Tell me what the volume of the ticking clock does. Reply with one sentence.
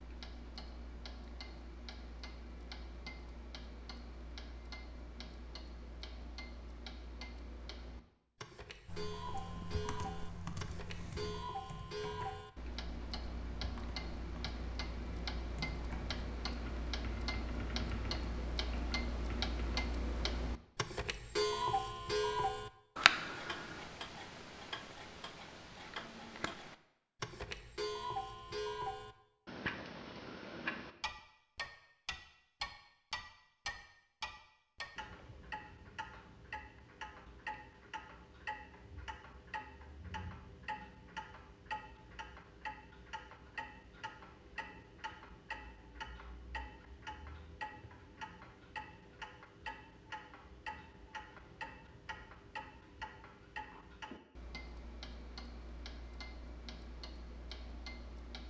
The loudness of the ticking clock goes up, then down.